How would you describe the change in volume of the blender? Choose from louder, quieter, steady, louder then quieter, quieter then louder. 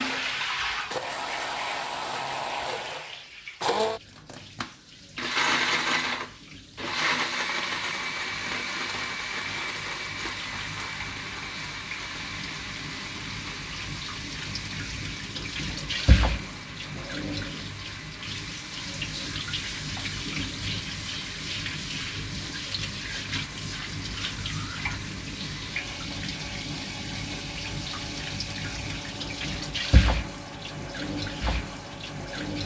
quieter.